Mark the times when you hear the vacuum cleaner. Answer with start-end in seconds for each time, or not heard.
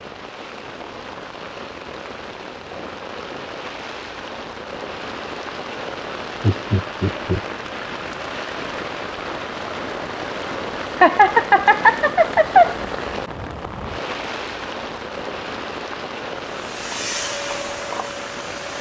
16.4-18.7.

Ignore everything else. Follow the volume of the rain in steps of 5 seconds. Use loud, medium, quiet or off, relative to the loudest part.
medium, loud, loud, loud.